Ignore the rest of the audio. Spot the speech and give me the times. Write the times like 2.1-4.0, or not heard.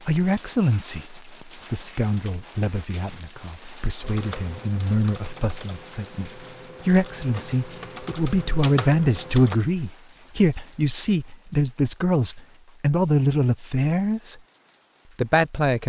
0.1-14.4, 15.2-15.8.